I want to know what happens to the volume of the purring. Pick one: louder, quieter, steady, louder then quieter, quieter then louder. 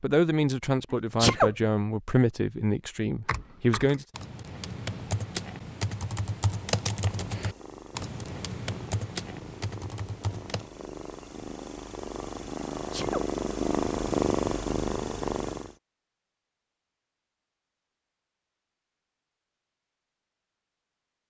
louder.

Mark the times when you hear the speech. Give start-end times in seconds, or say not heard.
0.0-4.0.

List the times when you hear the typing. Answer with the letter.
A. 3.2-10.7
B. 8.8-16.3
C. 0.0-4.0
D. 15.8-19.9
A.